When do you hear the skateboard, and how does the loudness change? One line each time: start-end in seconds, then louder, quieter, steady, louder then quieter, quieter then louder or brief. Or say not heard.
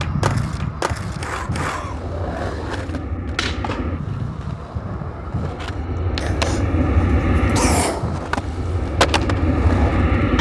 0.0-10.3 quieter then louder.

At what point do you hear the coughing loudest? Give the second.
8 s.